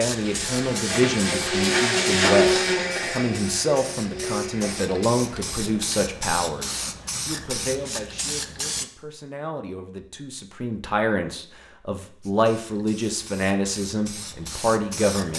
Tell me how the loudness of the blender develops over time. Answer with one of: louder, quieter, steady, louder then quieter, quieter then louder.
louder then quieter.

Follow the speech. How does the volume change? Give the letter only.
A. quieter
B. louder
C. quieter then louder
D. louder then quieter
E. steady
C.